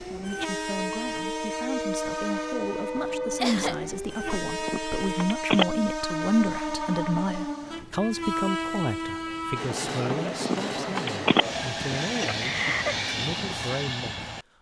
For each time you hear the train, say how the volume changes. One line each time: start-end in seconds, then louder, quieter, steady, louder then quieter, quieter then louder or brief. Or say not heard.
0.0-14.4 steady.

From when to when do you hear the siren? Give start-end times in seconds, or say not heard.
0.0-5.1.